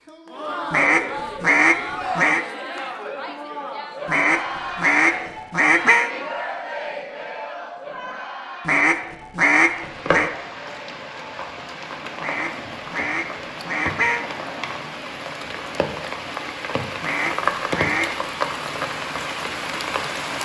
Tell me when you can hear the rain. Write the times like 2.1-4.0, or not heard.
9.6-20.3.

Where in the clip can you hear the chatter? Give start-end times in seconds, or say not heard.
0.0-15.0.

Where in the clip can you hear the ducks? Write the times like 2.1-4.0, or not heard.
0.7-2.4, 4.0-6.1, 8.7-10.3, 12.2-14.2, 17.0-18.1.